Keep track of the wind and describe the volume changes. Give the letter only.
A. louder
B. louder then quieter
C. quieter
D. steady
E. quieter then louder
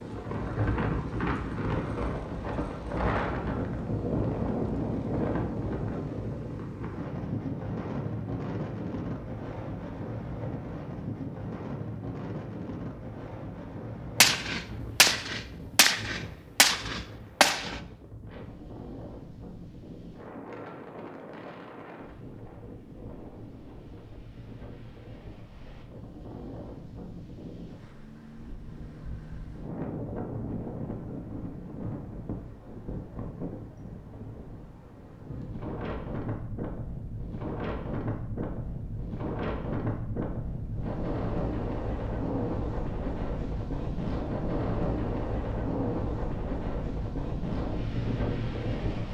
E.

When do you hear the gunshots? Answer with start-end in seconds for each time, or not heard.
14.2-17.8.